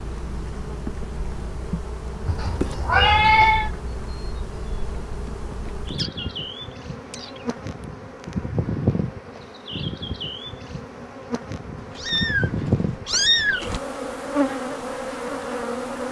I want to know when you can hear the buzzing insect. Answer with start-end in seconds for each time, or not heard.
0.0-16.0.